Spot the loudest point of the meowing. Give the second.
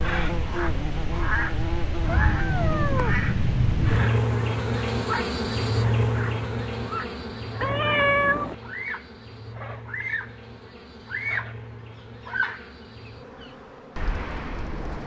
8 s.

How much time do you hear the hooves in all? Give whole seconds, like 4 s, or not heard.
not heard.